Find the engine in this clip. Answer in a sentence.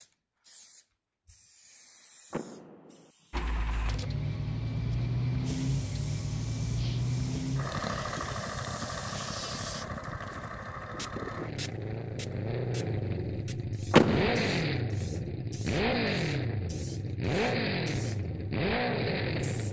The engine can be heard from 3.3 to 19.6 s.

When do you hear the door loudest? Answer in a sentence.
The loudest moment of the door is at 14 seconds.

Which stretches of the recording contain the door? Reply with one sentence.
The door can be heard from 2.3 to 3.1 s and from 13.9 to 14.6 s.